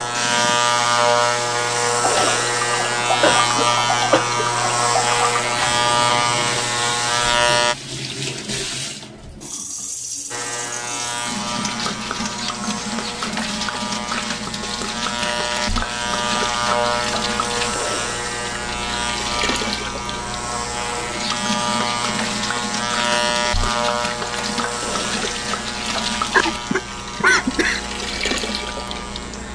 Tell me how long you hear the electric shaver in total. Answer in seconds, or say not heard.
27 s.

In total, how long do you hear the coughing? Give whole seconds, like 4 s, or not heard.
3 s.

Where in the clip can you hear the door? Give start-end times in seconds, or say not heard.
not heard.